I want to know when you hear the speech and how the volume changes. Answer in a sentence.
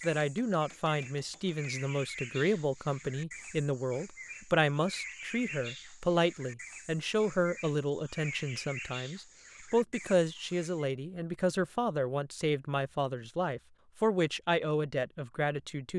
The speech can be heard from 0.0 to 15.9 s, at a steady volume.